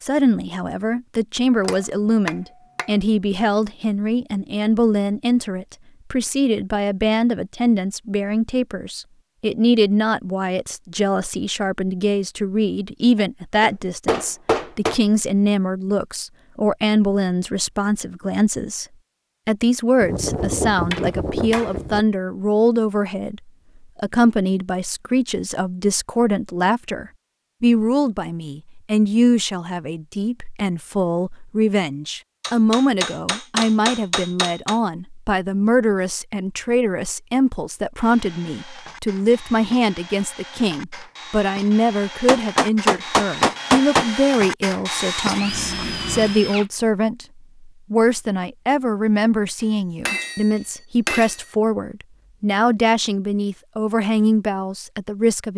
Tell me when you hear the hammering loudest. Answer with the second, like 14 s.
44 s.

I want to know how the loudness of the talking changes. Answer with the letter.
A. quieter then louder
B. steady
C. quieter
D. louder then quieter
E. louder
B.